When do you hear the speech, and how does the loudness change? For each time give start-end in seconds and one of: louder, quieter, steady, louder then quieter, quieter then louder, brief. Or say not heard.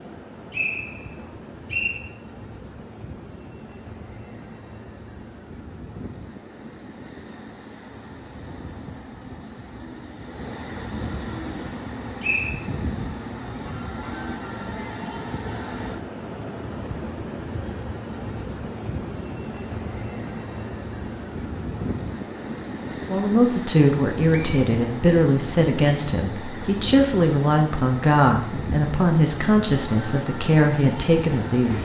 23.1-31.8 steady.